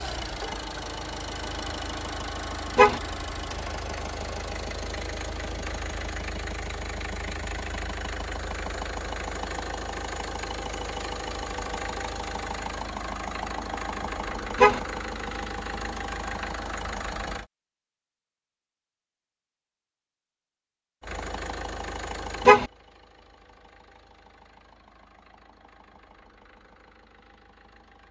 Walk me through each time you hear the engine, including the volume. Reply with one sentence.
The engine can be heard from 0.0 to 17.5 s, at a steady volume; and from 21.0 to 28.0 s, getting quieter.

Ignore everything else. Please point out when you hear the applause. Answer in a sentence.
The applause can't be heard in this clip.